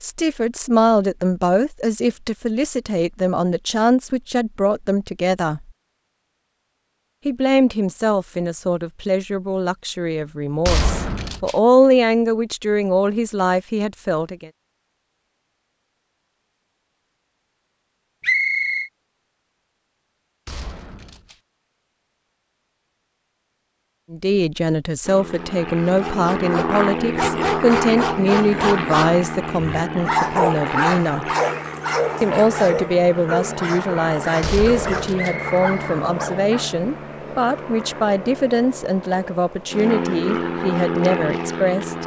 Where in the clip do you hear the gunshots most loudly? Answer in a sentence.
The loudest moment of the gunshots is at 11 seconds.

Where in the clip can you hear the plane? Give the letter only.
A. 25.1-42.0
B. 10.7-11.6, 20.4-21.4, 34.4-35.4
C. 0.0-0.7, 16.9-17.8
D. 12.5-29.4
A.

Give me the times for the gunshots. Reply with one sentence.
You can hear the gunshots from 10.7 to 11.6 s, from 20.4 to 21.4 s and from 34.4 to 35.4 s.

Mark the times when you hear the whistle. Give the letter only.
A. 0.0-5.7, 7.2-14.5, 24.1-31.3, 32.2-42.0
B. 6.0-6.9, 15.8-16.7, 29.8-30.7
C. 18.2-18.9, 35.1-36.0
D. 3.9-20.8
C.